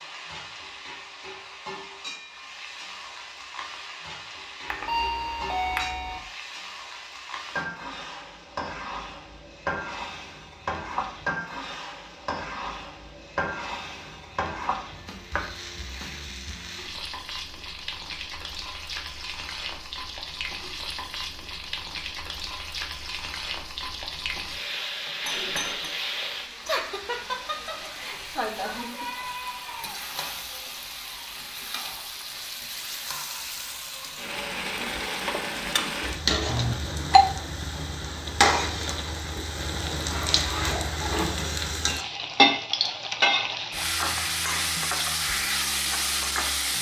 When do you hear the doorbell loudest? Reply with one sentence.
The loudest moment of the doorbell is at 37 seconds.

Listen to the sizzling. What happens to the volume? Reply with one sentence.
The loudness of the sizzling goes up.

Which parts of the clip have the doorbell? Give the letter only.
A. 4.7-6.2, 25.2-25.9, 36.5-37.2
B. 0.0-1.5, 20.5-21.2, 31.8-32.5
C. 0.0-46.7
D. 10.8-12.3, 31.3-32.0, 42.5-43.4
A.